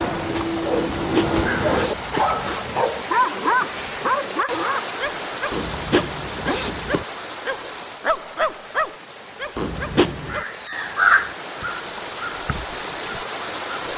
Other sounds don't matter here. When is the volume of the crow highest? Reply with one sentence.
The loudest moment of the crow is at 11 seconds.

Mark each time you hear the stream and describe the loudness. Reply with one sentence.
You can hear the stream from 0.0 to 13.9 s, getting quieter then louder.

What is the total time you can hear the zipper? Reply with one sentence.
You can hear the zipper for 4 seconds altogether.